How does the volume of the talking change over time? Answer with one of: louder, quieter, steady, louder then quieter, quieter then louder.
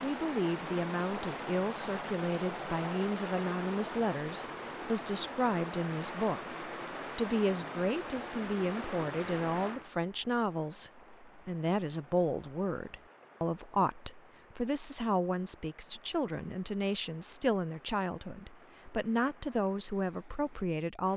steady.